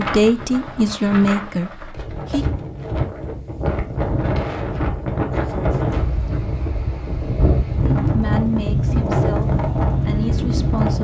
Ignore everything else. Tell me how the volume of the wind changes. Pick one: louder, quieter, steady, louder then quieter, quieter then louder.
louder.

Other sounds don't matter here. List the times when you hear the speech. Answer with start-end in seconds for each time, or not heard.
0.0-2.5, 7.8-10.9.